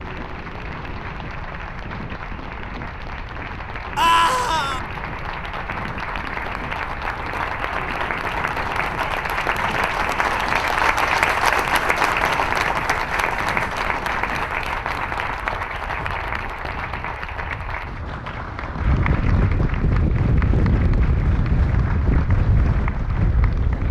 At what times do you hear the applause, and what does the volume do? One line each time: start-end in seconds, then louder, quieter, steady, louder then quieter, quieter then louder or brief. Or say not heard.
0.0-23.8 louder then quieter.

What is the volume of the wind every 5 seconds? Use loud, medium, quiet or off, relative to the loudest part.
quiet, quiet, quiet, medium, loud.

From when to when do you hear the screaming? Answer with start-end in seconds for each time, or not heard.
4.0-4.8.